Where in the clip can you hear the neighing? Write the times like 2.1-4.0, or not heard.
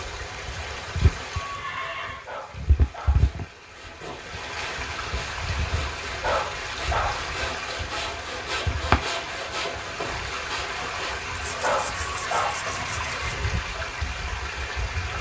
1.4-2.3, 12.1-13.6.